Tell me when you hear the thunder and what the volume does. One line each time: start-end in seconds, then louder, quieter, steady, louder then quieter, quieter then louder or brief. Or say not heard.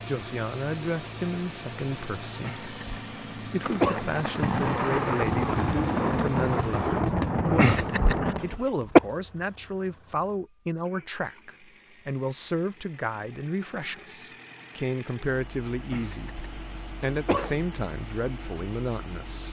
3.6-8.6 steady.